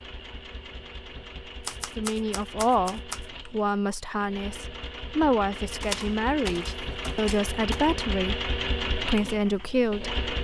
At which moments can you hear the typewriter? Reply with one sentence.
You can hear the typewriter from 1.6 to 3.2 s and from 5.8 to 7.8 s.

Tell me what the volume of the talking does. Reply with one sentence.
The loudness of the talking stays about the same.